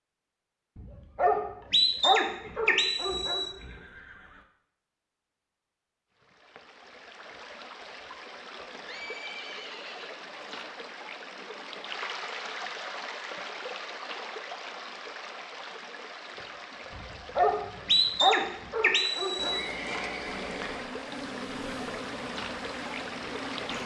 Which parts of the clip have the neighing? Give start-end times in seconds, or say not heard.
2.4-4.5, 8.8-10.7, 19.4-20.9.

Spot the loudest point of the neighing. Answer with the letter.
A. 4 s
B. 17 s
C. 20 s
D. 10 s
C.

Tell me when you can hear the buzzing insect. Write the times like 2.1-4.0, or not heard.
20.2-23.8.